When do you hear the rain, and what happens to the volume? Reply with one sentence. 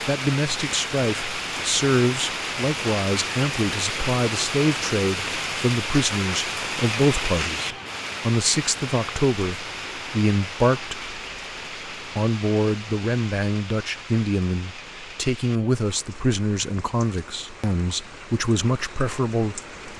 You can hear the rain from 0.0 to 19.9 s, getting quieter.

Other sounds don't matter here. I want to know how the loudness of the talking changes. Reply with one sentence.
The volume of the talking stays about the same.